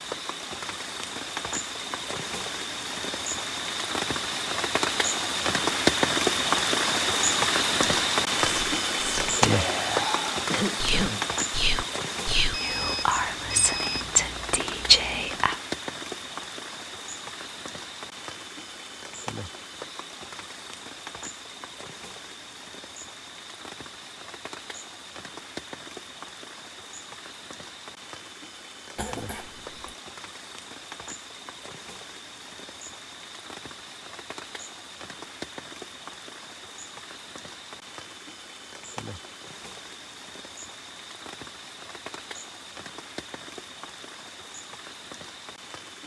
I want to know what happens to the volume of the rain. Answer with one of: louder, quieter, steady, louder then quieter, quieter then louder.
quieter.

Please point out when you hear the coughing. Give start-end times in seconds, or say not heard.
10.5-11.2, 28.9-29.9.